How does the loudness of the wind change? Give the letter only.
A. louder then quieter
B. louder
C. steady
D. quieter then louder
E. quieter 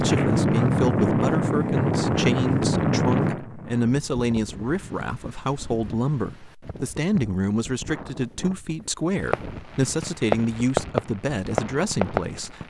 E.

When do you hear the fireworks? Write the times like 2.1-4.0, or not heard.
9.2-12.6.